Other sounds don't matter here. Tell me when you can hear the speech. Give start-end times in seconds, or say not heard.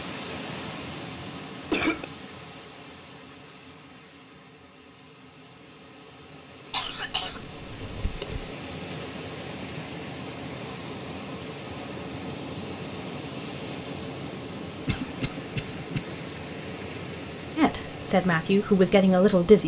17.6-19.6.